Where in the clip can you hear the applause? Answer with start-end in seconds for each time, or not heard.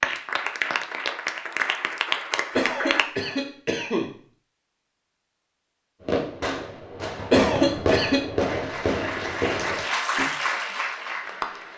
0.0-3.0, 8.4-11.7.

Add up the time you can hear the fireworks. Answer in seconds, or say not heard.
4 s.